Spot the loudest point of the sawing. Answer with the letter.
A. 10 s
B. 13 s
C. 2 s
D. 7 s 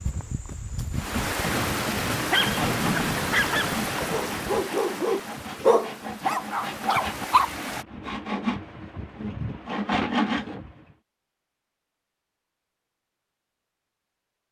A.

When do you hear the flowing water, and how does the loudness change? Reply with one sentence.
The flowing water can be heard from 0.0 to 7.8 s, getting quieter.